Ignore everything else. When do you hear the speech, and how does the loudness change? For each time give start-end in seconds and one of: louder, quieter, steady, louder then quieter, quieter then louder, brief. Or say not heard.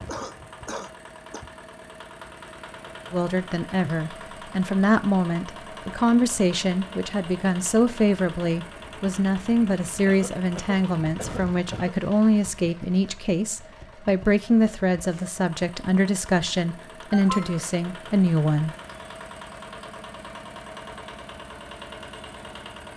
3.1-18.7 steady.